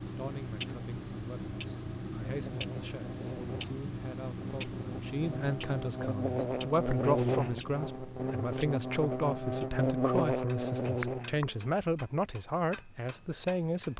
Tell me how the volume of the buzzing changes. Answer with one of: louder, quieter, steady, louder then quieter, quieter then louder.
louder.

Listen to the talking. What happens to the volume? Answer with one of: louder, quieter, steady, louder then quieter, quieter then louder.
louder.